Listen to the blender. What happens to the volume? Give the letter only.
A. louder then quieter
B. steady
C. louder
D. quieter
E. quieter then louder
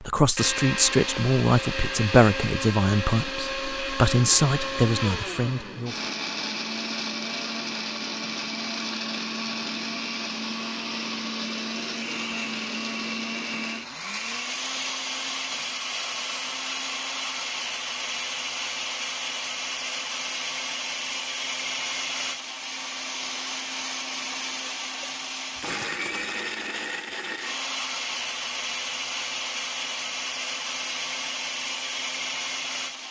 B.